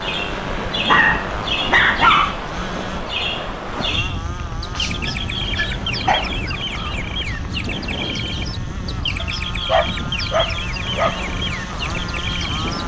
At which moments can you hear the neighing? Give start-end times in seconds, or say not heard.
not heard.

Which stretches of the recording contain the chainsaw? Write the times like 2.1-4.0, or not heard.
0.0-12.8.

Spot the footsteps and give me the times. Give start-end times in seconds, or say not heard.
not heard.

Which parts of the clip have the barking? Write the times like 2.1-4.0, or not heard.
0.8-2.4, 4.8-7.0, 9.2-11.2.